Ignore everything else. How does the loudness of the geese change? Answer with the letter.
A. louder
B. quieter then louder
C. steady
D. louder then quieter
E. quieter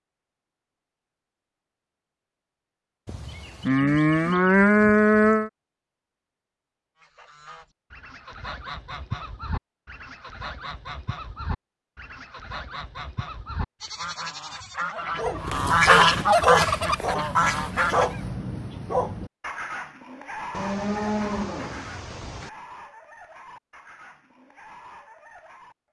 A.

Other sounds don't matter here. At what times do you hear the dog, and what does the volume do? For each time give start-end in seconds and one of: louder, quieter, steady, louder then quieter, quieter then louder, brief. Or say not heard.
14.9-25.8 quieter.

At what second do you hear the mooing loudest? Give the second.
5 s.